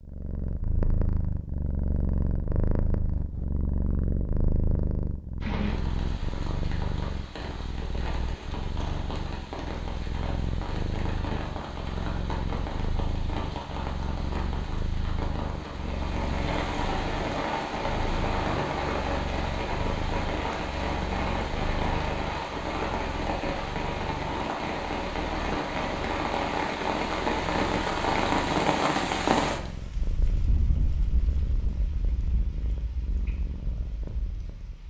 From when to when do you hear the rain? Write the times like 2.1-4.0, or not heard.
5.4-34.8.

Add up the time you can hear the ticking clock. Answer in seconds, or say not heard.
not heard.